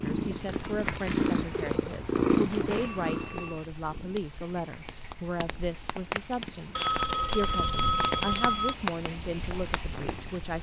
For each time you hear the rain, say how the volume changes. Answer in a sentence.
The rain can be heard from 0.0 to 10.5 s, getting louder.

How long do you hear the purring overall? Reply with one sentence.
The purring can be heard for 5 seconds in total.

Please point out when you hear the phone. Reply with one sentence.
You can hear the phone from 2.7 to 3.6 s and from 6.8 to 8.8 s.